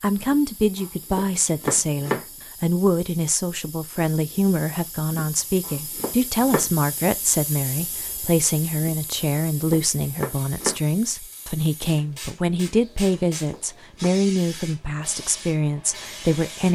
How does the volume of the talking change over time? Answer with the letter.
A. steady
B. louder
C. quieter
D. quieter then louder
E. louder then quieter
A.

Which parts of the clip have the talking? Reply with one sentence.
You can hear the talking from 0.0 to 16.7 s.